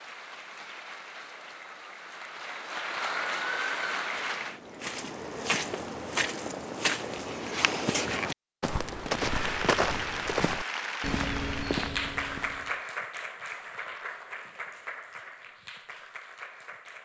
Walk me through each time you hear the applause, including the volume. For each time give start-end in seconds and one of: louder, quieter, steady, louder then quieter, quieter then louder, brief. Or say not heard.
0.0-4.6 louder
9.1-17.0 quieter.